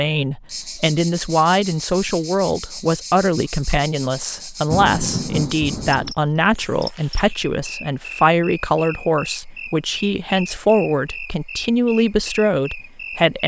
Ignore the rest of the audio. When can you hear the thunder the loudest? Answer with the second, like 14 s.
5 s.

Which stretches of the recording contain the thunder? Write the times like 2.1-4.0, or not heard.
4.7-6.2.